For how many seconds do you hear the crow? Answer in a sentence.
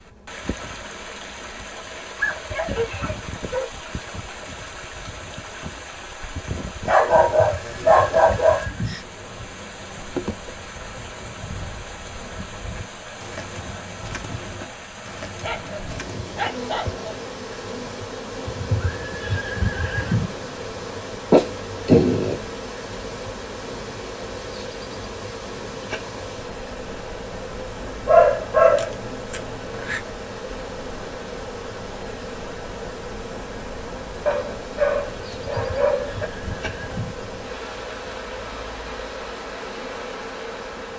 You can't hear the crow here.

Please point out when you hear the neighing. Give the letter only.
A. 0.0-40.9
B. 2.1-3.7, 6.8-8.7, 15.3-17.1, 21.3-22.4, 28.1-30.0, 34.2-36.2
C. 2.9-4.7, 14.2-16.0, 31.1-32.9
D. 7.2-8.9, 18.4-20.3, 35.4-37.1
D.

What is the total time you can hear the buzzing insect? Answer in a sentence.
The buzzing insect can be heard for 41 seconds in total.